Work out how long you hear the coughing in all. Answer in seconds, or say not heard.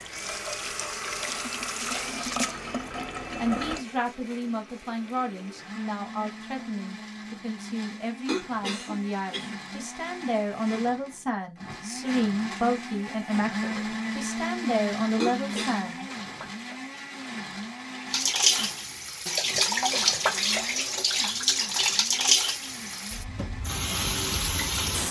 2 s.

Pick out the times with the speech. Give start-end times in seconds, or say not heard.
3.4-16.1.